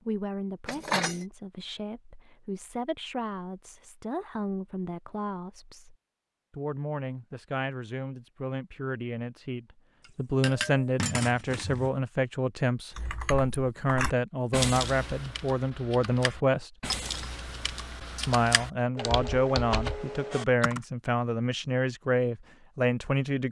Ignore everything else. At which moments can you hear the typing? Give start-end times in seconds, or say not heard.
12.9-20.8.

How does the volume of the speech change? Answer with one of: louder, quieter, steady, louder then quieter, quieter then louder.
louder.